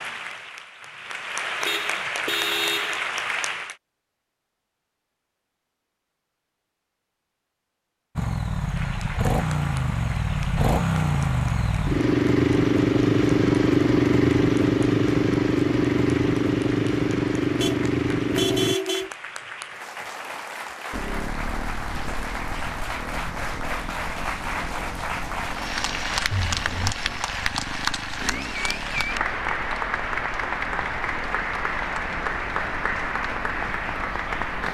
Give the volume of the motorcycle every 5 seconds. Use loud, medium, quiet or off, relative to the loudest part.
off, medium, loud, loud, quiet, quiet, quiet.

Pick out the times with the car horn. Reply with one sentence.
The car horn can be heard from 1.6 to 3.1 s, from 17.6 to 19.1 s and from 26.3 to 26.9 s.